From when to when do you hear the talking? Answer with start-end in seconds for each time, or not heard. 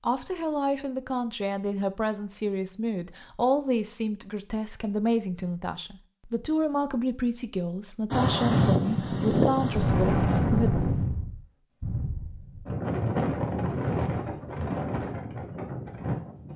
0.0-10.8.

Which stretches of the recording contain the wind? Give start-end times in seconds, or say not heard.
8.1-16.5.